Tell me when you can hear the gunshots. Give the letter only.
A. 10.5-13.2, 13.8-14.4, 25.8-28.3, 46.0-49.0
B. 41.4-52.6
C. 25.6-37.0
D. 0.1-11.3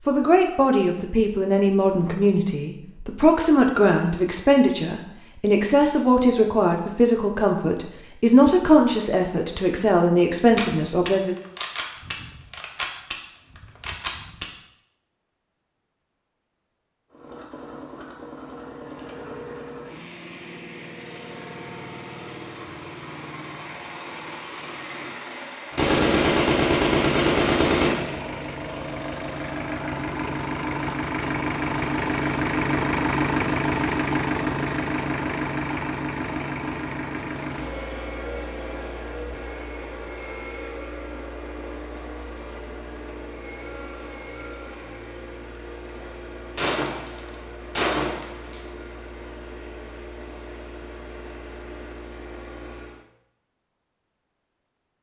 A.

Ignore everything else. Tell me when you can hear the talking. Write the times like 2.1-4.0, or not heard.
0.1-11.3.